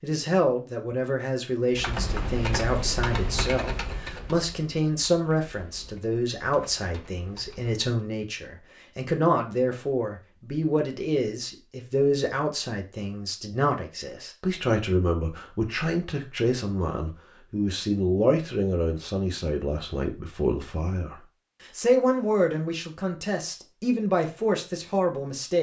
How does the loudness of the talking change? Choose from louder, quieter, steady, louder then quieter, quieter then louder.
steady.